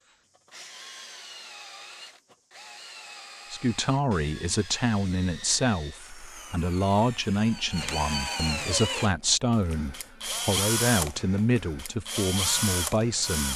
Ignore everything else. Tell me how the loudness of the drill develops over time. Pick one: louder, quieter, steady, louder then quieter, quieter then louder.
louder.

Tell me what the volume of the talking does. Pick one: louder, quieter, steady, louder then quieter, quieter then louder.
steady.